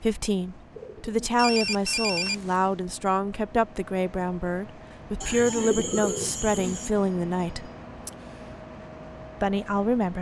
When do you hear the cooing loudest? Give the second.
6 s.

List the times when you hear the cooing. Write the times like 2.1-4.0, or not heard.
0.7-1.2, 5.2-6.9.